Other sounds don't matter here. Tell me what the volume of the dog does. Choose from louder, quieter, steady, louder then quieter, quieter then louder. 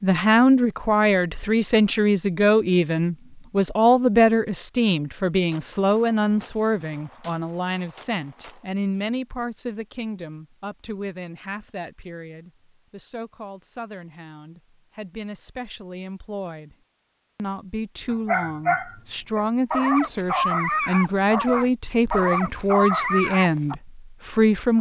steady.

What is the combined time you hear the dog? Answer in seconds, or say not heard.
6 s.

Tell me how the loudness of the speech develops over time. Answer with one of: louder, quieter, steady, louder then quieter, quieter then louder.
quieter then louder.